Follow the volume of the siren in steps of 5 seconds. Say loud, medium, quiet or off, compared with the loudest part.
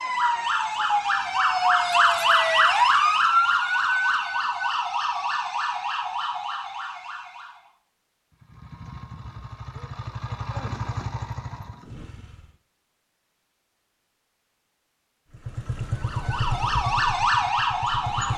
loud, medium, off, loud.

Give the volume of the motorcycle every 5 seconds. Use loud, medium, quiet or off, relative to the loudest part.
off, medium, loud, loud.